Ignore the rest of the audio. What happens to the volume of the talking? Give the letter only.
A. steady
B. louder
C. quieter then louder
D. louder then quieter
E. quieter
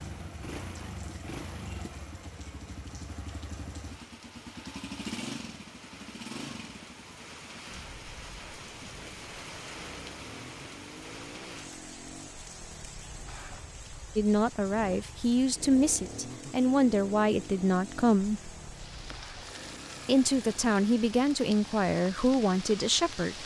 A.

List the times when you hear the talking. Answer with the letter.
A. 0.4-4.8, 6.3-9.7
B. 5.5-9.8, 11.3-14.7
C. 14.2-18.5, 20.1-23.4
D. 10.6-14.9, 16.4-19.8
C.